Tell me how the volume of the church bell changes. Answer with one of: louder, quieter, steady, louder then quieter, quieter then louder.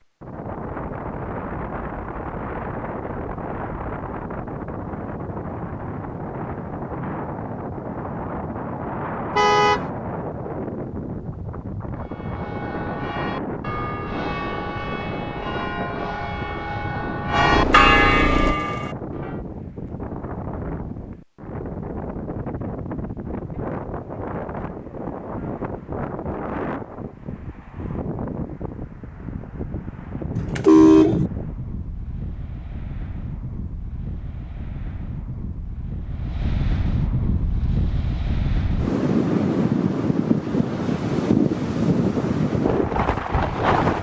louder.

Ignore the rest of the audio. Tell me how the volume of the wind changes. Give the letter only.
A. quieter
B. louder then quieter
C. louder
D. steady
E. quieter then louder
C.